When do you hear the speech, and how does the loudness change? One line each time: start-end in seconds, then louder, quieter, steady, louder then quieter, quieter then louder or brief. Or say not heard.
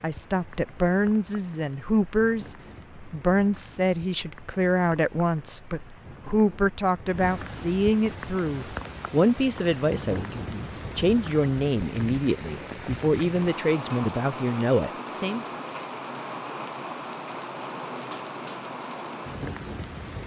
0.0-15.6 steady.